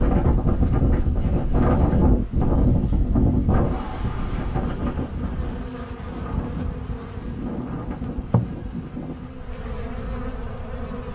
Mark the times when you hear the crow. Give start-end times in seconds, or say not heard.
not heard.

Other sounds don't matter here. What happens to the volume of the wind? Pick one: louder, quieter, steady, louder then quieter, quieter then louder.
quieter.